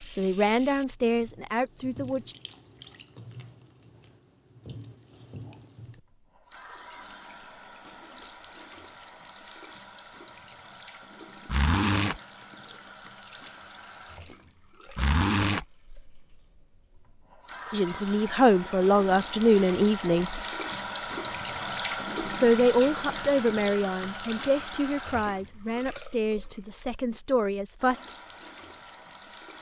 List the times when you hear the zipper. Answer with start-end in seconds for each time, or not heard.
11.4-12.2, 14.9-15.7.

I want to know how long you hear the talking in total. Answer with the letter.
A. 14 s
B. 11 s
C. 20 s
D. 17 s
B.